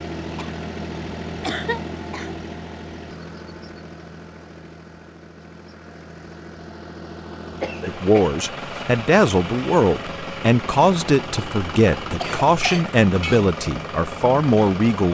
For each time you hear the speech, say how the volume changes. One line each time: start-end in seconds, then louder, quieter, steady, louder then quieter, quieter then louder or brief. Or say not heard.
7.8-15.0 steady.